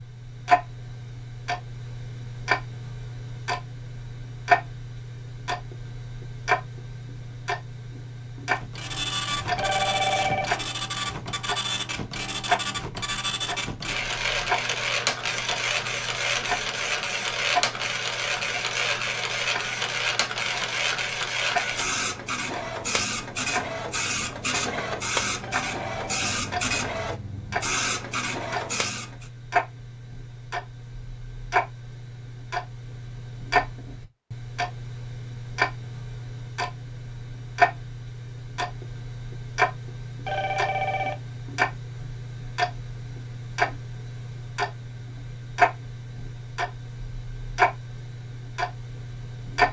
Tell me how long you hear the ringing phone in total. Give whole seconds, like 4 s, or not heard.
3 s.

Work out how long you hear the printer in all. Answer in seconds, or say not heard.
21 s.